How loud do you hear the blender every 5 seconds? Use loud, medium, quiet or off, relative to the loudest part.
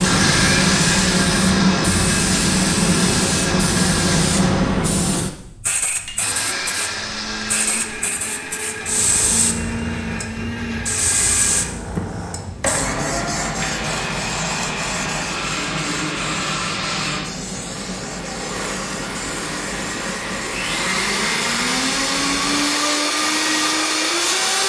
loud, medium, medium, medium, loud.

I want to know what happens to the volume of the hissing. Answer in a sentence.
The volume of the hissing goes down.